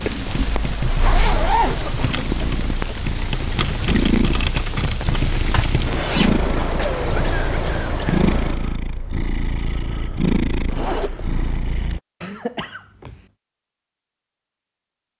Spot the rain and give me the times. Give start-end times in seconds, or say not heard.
0.0-8.7.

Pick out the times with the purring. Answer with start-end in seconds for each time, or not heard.
0.0-12.0.